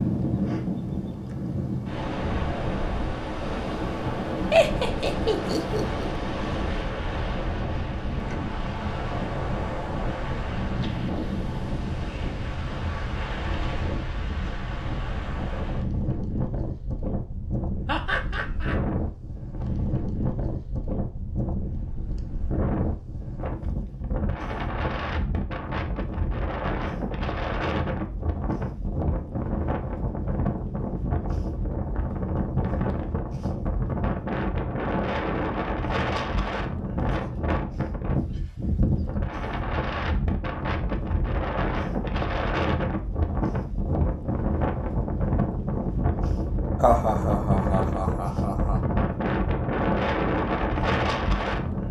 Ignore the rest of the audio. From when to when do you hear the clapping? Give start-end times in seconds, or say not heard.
not heard.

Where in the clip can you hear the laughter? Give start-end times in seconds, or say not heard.
4.5-6.1, 17.9-18.8, 46.8-48.8.